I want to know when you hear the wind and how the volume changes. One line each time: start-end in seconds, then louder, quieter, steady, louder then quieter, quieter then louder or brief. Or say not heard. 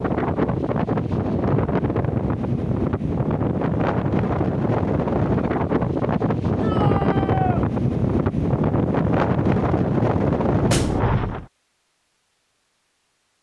0.0-11.4 steady.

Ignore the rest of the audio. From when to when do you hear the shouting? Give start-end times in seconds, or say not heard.
6.6-7.7.